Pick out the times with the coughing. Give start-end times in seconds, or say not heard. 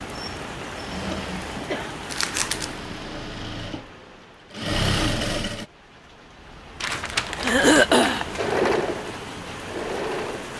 1.1-1.9, 7.4-8.2.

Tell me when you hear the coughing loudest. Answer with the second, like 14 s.
8 s.